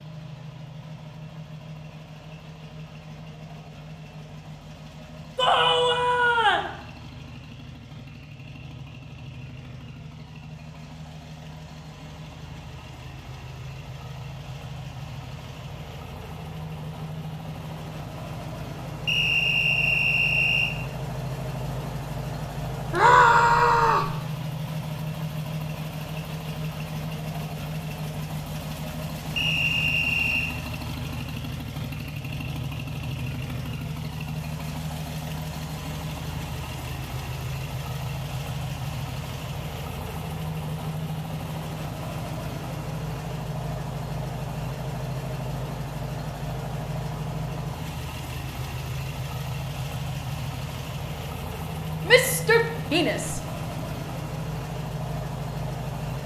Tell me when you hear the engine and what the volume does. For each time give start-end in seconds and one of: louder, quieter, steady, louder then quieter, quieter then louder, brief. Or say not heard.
0.0-56.2 louder.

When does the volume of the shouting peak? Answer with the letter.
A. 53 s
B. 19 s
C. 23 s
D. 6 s
C.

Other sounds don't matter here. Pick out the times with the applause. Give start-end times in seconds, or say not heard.
not heard.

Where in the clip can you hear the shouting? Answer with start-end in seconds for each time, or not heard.
5.3-6.7, 22.9-24.1, 52.0-53.4.